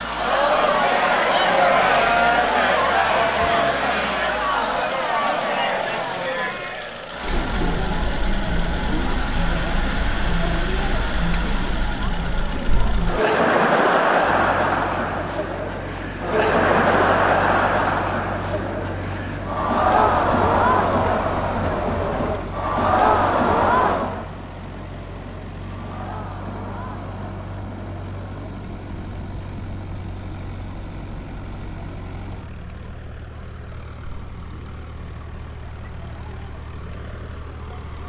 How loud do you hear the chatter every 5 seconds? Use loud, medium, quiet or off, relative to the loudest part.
loud, medium, loud, loud, loud, quiet, quiet, quiet.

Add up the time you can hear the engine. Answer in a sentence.
The engine can be heard for 38 seconds in total.